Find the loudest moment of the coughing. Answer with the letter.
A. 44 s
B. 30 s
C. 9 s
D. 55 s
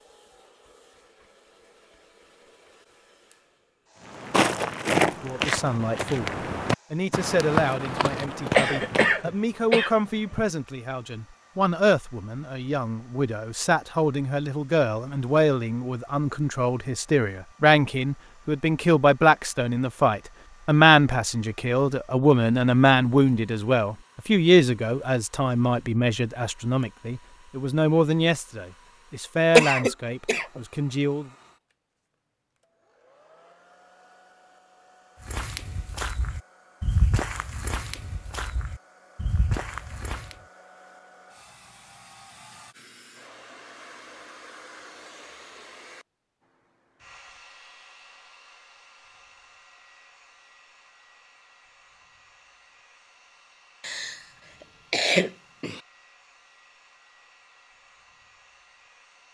B.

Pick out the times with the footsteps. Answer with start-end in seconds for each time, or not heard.
4.0-9.2, 35.2-40.4.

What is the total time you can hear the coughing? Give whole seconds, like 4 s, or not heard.
4 s.